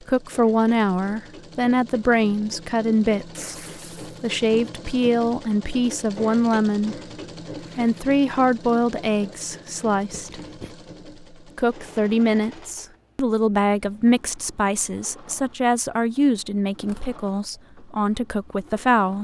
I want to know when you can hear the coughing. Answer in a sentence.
The coughing can be heard from 10.1 to 10.8 s.